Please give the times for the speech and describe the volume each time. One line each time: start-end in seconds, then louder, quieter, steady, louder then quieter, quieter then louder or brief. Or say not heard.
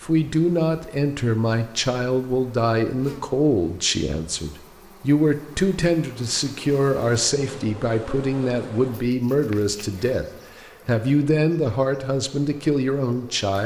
0.0-13.6 steady.